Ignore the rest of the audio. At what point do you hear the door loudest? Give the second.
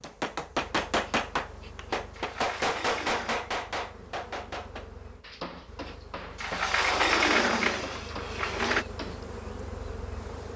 7 s.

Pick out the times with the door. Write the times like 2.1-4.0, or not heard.
2.1-3.4, 6.3-8.8.